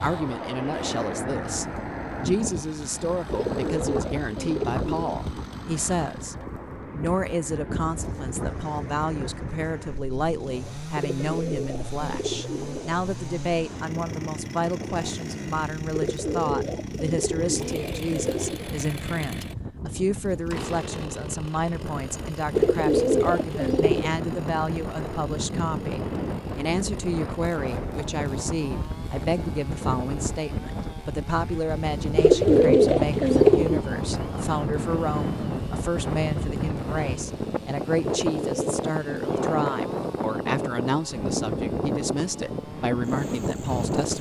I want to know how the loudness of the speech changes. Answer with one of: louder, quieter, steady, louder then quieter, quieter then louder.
steady.